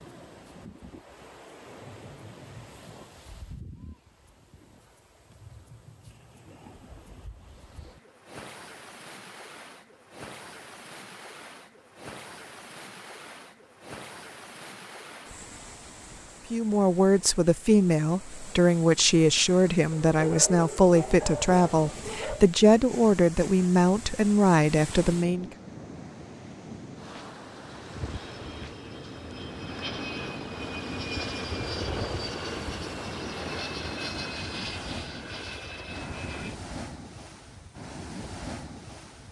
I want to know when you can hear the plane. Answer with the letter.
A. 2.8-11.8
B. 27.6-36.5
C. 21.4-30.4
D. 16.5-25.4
B.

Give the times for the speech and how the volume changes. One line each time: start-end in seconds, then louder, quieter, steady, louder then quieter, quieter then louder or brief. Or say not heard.
16.5-25.4 steady.